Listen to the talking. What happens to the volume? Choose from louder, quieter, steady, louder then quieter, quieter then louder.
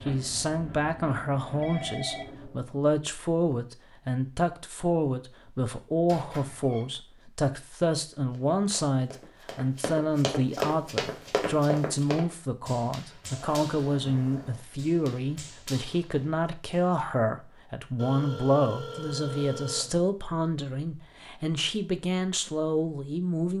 steady.